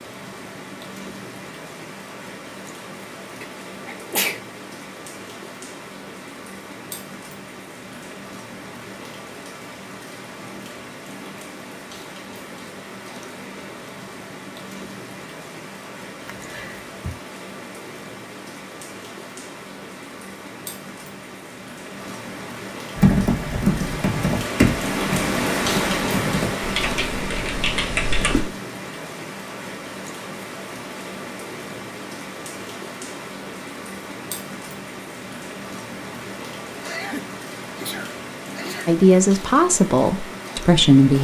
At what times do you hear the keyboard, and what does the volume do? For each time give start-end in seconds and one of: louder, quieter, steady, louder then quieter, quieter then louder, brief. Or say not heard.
22.9-28.4 quieter then louder.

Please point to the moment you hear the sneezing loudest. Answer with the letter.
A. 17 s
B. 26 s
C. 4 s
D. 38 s
C.